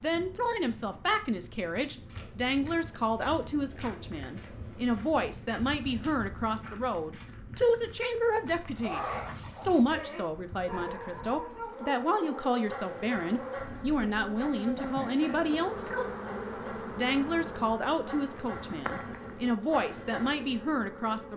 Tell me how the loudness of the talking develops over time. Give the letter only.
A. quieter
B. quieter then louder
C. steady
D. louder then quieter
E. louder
C.